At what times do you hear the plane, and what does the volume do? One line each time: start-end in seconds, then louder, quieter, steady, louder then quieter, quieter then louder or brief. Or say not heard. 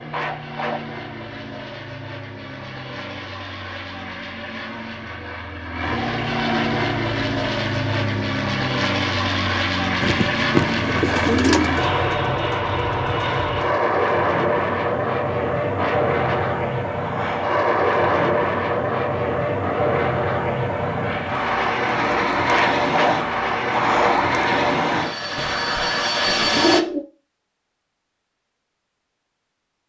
0.0-26.8 louder.